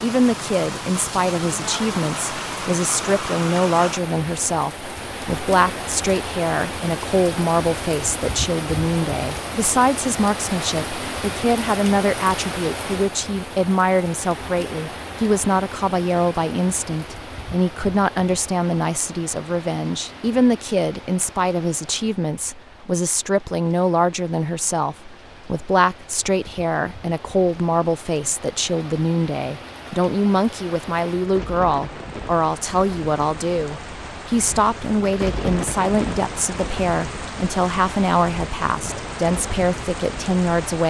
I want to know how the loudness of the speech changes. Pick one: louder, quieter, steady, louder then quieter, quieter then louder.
steady.